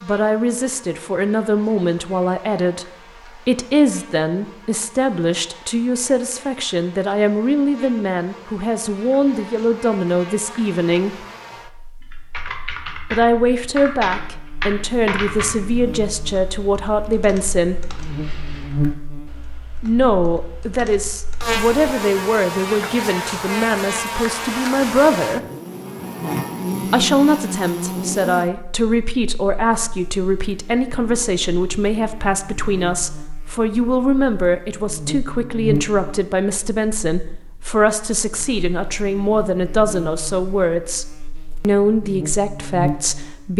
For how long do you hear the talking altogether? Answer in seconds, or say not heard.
38 s.